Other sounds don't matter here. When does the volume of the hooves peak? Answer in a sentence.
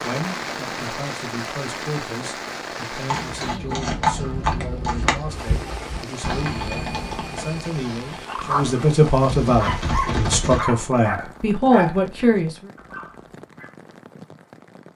The loudest moment of the hooves is at 4 seconds.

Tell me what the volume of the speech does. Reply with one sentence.
The volume of the speech goes up.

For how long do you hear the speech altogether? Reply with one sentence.
You can hear the speech for 13 seconds altogether.